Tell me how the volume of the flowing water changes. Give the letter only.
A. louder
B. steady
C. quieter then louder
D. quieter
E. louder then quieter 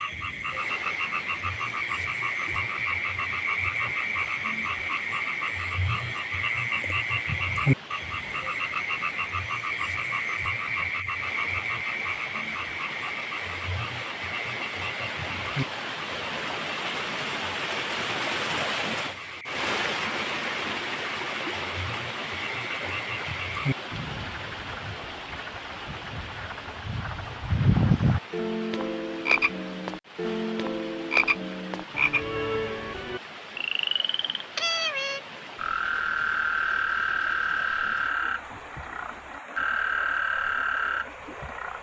E.